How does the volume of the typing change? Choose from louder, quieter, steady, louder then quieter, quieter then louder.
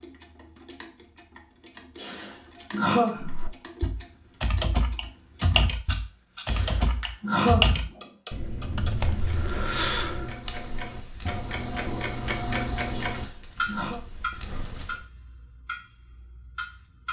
quieter.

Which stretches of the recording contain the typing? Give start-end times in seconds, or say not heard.
3.2-15.0.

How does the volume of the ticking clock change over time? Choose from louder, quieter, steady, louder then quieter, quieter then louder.
louder then quieter.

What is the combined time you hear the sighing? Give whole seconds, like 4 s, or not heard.
4 s.